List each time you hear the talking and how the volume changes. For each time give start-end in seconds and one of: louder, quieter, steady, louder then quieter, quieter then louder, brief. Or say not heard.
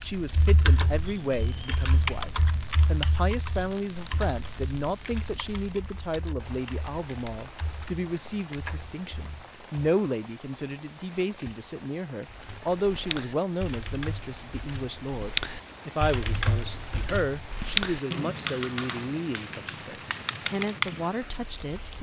0.0-21.9 steady.